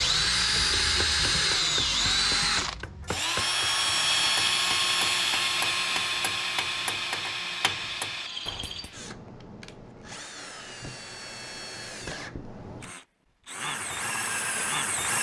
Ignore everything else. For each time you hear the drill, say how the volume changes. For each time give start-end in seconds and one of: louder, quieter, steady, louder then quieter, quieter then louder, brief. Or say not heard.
0.0-15.1 quieter then louder.